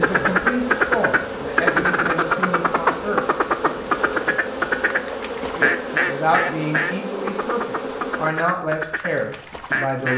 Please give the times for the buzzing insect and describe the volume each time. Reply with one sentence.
You can hear the buzzing insect from 0.0 to 8.3 s, at a steady volume.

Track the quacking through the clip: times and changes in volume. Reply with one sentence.
You can hear the quacking from 0.0 to 10.1 s, getting quieter.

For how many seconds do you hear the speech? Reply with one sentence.
The speech can be heard for 8 seconds in total.